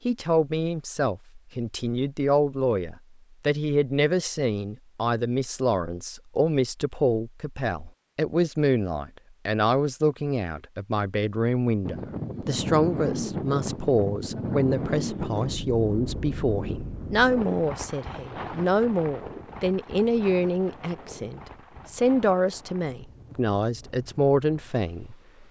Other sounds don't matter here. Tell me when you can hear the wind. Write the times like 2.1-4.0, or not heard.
11.8-25.4.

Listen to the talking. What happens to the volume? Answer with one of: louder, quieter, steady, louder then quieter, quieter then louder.
steady.